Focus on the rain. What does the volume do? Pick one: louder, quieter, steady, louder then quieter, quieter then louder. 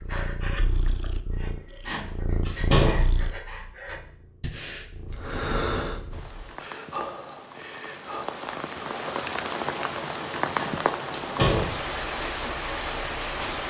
louder.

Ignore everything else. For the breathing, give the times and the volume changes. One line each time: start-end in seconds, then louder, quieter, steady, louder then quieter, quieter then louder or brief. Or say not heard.
0.0-8.2 louder then quieter.